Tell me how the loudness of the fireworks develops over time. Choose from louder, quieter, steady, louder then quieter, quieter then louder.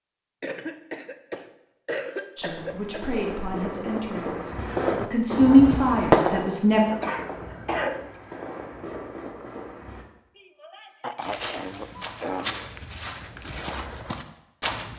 louder then quieter.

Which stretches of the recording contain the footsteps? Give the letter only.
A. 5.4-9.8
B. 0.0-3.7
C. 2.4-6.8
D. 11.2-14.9
D.